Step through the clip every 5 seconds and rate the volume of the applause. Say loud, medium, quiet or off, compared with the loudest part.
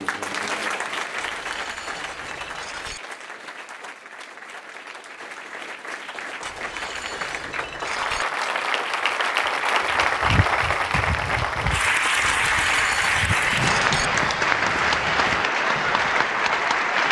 medium, medium, loud, loud.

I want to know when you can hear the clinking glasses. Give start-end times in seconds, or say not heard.
1.1-3.0, 6.4-8.2, 12.3-14.1.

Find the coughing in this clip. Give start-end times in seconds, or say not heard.
not heard.